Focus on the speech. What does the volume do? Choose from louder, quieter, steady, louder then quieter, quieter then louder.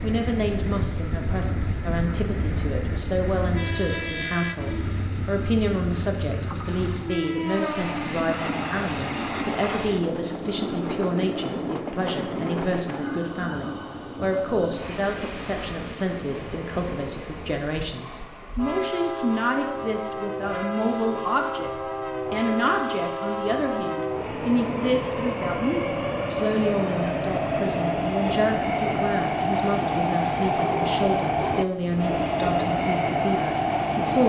steady.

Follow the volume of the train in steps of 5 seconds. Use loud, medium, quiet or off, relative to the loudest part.
medium, medium, medium, medium, medium, loud, loud.